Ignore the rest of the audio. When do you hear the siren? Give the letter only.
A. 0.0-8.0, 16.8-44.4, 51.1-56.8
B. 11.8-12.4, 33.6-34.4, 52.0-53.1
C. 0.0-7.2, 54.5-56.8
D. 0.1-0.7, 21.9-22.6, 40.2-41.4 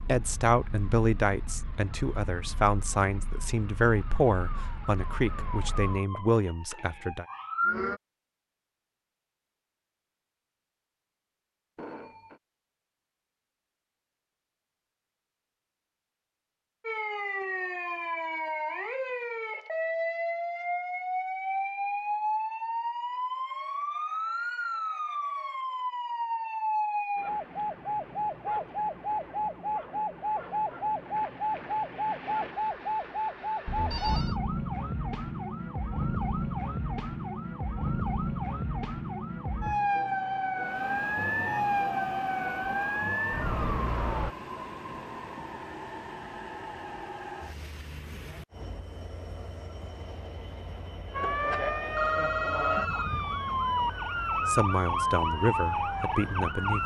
A.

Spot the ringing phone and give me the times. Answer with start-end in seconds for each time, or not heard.
11.8-12.4, 33.6-34.4, 52.0-53.1.